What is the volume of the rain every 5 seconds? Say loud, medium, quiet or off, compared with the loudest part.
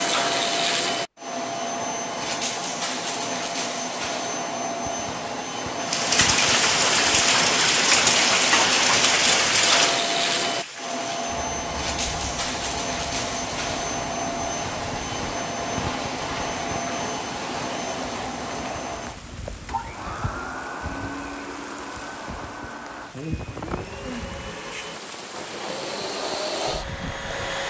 off, loud, quiet, quiet, quiet, quiet.